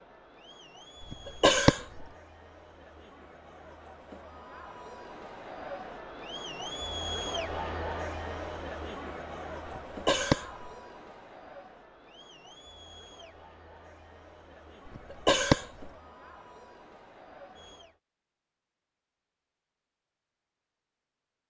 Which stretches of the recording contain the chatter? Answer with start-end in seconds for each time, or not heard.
0.0-18.0.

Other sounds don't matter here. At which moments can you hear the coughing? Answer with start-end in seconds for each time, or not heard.
1.0-2.0, 9.7-10.7, 14.8-15.9.